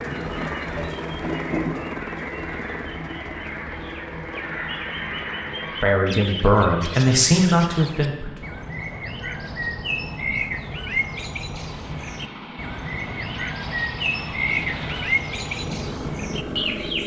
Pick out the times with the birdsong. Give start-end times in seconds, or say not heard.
0.0-17.0.